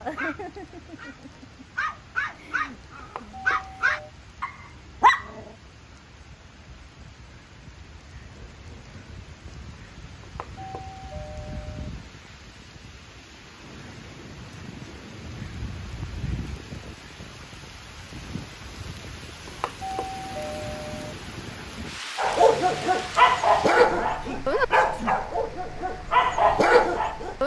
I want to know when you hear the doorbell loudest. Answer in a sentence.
The volume of the doorbell peaks at 20 seconds.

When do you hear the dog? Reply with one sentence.
You can hear the dog from 0.0 to 5.5 s and from 22.1 to 27.4 s.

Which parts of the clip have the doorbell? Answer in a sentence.
The doorbell can be heard from 3.0 to 4.1 s, from 10.2 to 11.9 s and from 19.4 to 21.1 s.